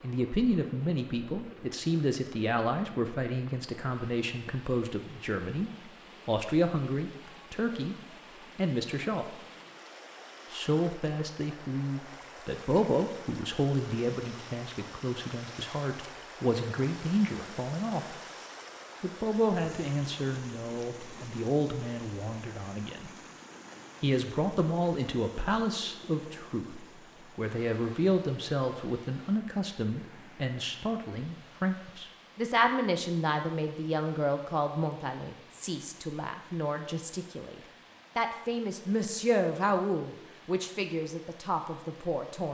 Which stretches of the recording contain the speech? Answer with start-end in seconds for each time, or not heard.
0.0-8.0, 8.6-9.3, 10.5-18.1, 19.0-23.1, 24.0-42.4.